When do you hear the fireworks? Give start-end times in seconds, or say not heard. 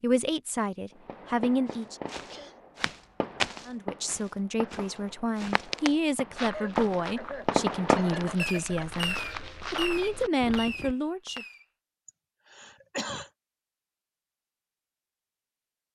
0.9-11.7.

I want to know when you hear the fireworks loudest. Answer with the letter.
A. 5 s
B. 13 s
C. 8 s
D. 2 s
C.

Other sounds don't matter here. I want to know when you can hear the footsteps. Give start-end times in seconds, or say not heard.
1.7-10.9.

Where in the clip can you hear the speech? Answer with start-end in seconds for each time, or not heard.
0.0-2.0, 3.6-11.4.